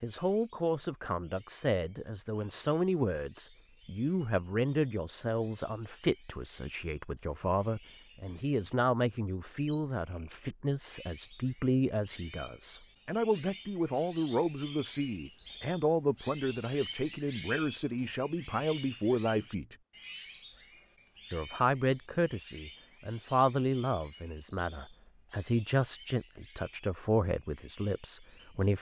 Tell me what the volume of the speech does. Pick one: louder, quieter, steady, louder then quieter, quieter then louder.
steady.